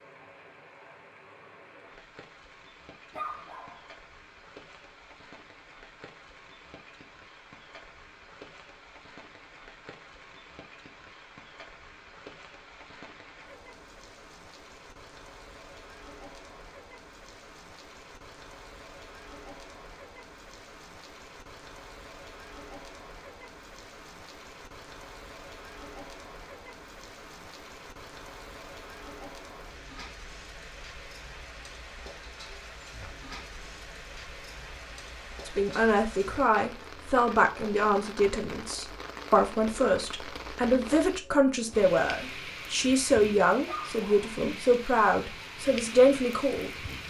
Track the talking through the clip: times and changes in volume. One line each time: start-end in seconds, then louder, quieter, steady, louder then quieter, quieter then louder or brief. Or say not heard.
35.5-46.7 steady.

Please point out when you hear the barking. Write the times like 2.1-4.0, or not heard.
3.1-3.9, 43.6-44.4.